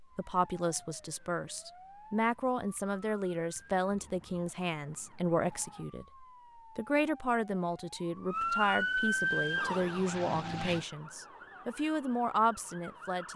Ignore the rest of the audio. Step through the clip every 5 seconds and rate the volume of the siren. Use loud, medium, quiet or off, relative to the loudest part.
quiet, loud, quiet.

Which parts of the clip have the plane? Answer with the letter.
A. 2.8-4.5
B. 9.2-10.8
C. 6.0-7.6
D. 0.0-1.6
B.